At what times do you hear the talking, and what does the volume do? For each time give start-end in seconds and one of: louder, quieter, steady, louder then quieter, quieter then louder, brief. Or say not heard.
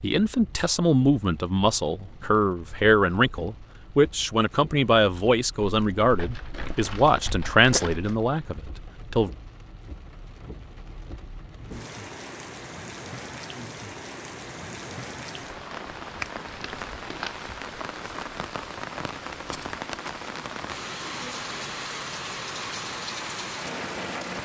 0.0-9.3 steady.